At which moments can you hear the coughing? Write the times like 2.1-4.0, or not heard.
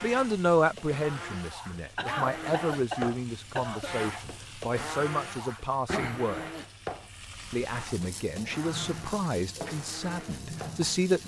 1.9-3.9.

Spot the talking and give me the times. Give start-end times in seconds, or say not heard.
0.0-6.5, 7.5-11.2.